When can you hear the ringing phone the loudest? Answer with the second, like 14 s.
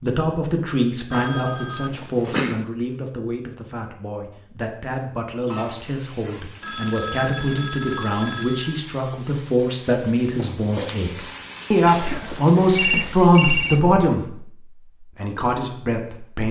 13 s.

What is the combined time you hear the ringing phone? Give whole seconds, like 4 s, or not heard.
6 s.